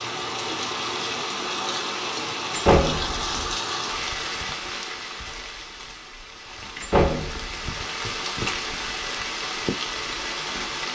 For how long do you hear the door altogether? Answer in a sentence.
The door can be heard for 2 seconds in total.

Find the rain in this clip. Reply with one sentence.
The rain can be heard from 0.0 to 10.9 s.